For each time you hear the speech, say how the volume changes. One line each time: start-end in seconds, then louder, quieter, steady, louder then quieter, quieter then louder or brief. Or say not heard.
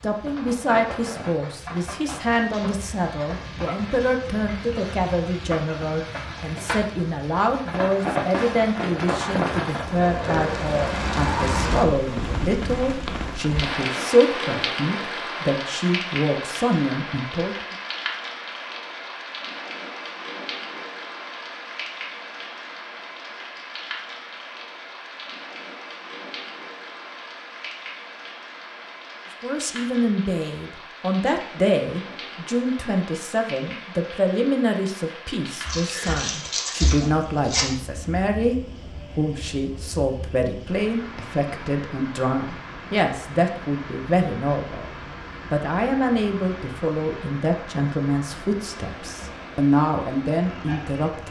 0.0-17.8 steady
29.4-51.2 steady.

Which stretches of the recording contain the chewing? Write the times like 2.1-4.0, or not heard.
35.6-37.6.